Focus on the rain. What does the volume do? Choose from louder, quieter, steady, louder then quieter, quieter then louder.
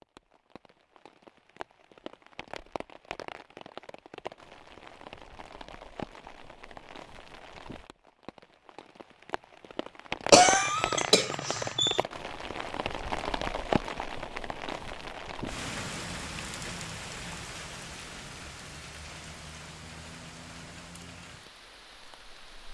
louder then quieter.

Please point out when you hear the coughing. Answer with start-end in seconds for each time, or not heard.
10.3-12.0.